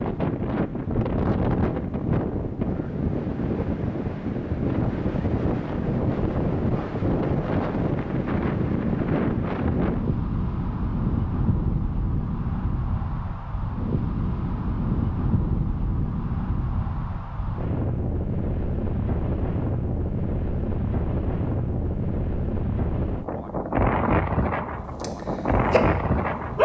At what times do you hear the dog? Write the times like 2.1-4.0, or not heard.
25.0-26.6.